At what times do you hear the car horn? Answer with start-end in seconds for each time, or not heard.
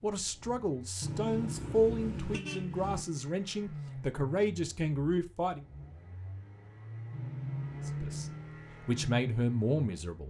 1.0-3.0, 7.1-8.4.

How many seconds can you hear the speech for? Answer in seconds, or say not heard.
8 s.